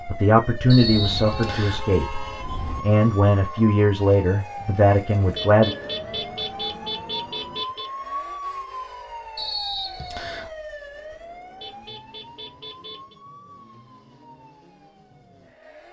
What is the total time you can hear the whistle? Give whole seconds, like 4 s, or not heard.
2 s.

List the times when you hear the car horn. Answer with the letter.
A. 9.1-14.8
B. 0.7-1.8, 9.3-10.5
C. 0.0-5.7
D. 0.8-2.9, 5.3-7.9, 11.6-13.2
D.